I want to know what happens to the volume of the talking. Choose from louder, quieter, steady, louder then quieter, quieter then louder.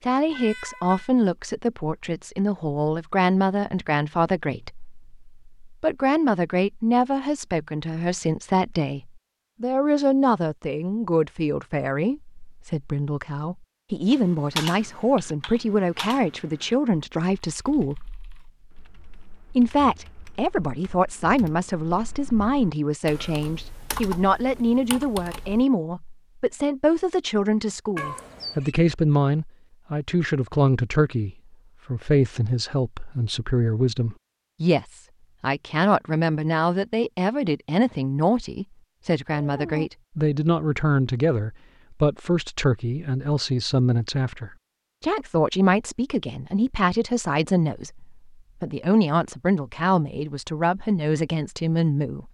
steady.